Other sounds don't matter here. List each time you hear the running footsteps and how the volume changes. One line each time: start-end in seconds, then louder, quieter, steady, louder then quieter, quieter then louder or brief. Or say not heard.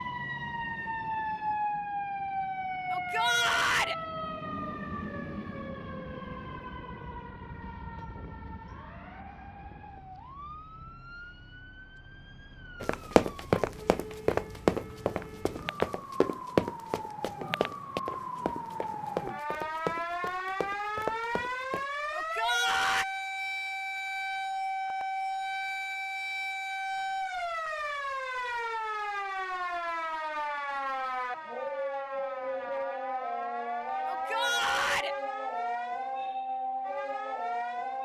12.8-21.9 quieter.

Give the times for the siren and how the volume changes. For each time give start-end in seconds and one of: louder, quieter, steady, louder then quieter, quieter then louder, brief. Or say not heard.
0.0-37.9 quieter then louder.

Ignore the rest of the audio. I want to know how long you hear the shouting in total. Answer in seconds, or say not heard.
3 s.